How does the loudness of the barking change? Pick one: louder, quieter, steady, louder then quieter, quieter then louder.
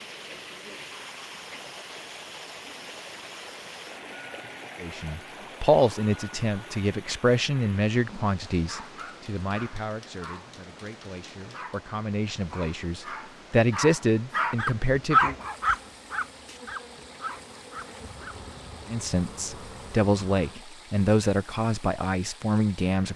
louder then quieter.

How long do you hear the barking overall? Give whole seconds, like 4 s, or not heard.
10 s.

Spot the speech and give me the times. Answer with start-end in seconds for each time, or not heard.
4.8-15.3, 18.9-23.1.